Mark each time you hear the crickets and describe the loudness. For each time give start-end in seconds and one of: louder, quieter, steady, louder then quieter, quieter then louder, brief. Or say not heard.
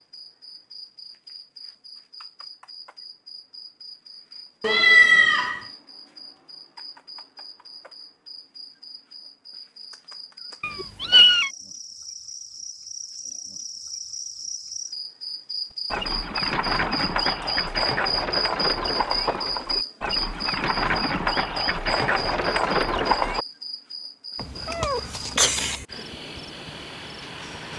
0.0-27.7 louder then quieter.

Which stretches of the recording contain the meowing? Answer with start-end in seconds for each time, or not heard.
4.6-5.6, 10.6-11.5, 24.4-25.9.